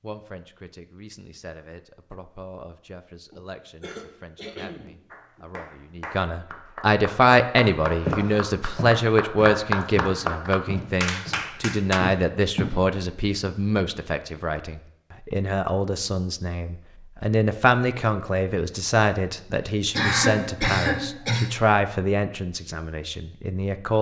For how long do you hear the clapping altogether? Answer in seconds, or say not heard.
7 s.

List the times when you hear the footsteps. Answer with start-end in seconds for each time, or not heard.
8.1-12.8.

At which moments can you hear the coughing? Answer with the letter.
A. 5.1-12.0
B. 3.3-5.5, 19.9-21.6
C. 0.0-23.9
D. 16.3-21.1
B.